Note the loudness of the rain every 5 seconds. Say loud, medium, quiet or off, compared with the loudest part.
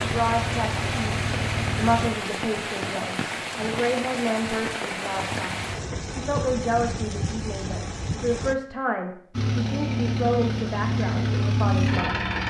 loud, loud, off.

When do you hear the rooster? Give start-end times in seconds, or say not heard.
not heard.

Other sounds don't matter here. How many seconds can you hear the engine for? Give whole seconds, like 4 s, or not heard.
5 s.